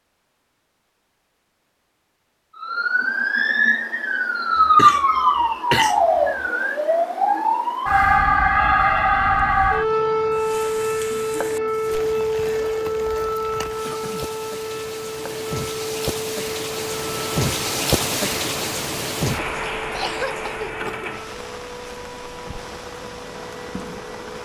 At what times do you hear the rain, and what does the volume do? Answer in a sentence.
The rain can be heard from 10.3 to 24.4 s, getting louder then quieter.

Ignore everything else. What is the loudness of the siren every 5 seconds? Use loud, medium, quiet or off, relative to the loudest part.
loud, loud, medium, quiet, quiet.